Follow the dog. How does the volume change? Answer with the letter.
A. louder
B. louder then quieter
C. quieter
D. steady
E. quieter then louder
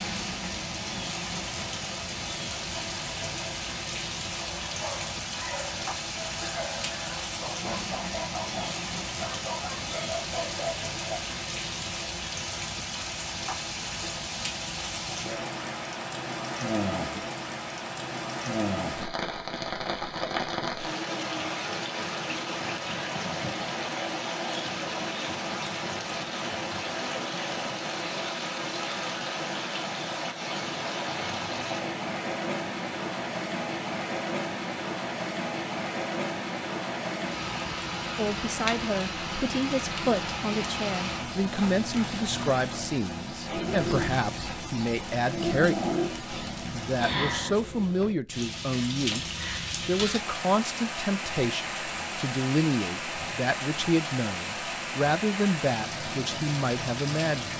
D.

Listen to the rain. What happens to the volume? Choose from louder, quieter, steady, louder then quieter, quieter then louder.
steady.